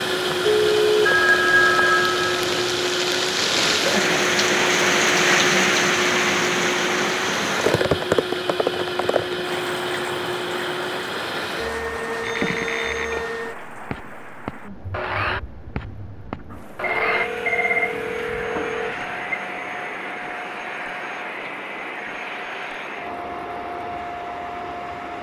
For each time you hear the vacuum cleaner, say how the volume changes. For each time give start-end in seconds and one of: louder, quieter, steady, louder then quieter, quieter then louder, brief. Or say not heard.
0.0-25.1 quieter.